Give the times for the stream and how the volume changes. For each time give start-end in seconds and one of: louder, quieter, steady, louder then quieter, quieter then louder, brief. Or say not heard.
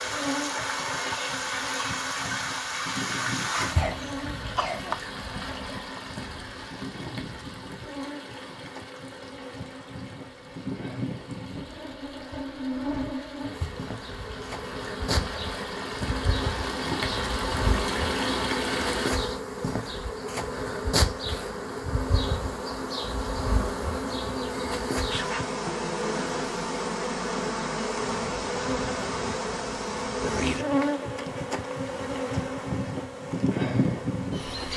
0.0-19.1 quieter then louder.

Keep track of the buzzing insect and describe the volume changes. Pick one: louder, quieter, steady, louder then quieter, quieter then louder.
louder.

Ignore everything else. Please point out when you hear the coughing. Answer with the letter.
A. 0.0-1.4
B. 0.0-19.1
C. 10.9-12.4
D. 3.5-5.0
D.